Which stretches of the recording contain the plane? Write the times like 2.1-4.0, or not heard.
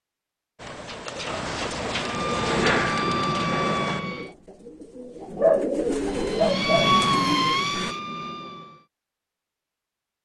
2.0-4.2, 6.0-8.8.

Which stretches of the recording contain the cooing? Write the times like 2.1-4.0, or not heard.
0.6-7.9.